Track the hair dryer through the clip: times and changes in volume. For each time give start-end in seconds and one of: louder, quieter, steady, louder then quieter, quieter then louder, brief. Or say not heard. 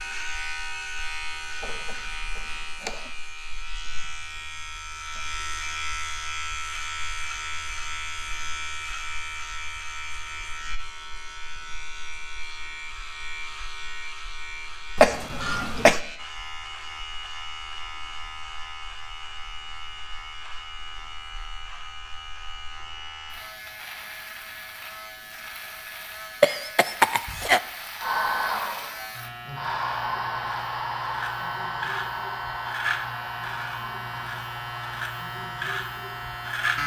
28.0-36.6 quieter.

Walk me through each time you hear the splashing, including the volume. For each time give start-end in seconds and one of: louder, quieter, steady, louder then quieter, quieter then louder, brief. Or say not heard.
not heard.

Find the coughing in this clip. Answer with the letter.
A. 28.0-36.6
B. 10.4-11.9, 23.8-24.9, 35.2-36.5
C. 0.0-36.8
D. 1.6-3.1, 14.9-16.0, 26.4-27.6
D.